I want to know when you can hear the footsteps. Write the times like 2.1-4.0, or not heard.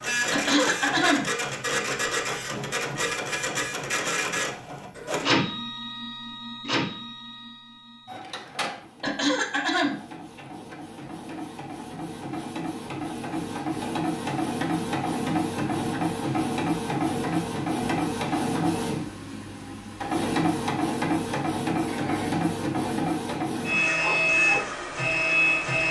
not heard.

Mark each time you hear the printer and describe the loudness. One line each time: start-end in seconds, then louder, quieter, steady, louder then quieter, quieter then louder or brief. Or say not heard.
0.0-25.8 quieter then louder.